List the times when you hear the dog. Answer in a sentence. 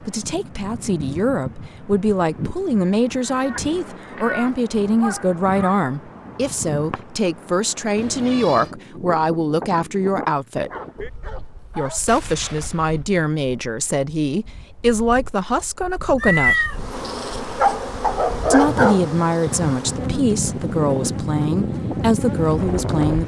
You can hear the dog from 5.0 to 5.8 s, from 10.7 to 13.1 s and from 17.6 to 19.1 s.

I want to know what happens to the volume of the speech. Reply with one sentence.
The loudness of the speech stays about the same.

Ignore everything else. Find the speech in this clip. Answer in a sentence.
You can hear the speech from 0.0 to 10.7 s, from 11.8 to 16.8 s and from 18.5 to 23.2 s.